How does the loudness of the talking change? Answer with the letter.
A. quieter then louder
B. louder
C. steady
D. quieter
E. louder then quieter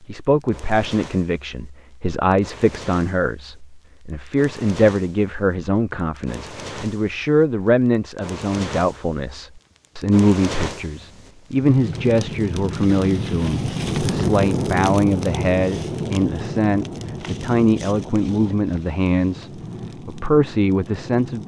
C.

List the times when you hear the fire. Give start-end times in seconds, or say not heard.
0.2-21.4.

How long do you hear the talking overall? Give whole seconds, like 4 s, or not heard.
21 s.